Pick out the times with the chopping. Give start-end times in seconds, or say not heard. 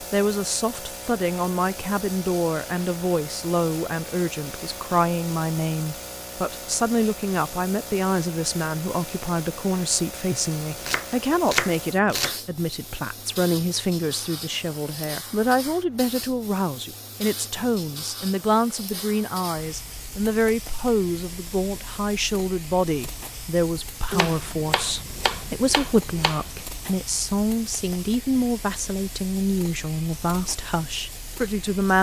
10.8-12.3, 24.1-26.6.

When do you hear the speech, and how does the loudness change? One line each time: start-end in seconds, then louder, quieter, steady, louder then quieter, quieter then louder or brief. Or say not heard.
0.0-31.9 steady.